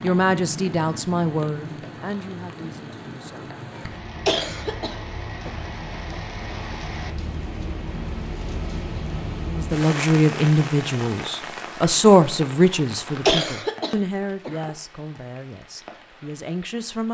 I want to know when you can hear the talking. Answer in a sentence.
You can hear the talking from 0.0 to 3.5 s and from 9.5 to 17.0 s.